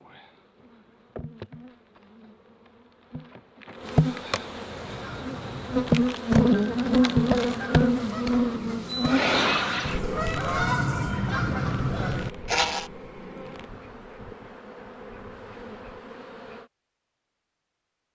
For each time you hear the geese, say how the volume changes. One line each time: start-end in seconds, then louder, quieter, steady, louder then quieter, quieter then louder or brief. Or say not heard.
4.7-12.9 louder.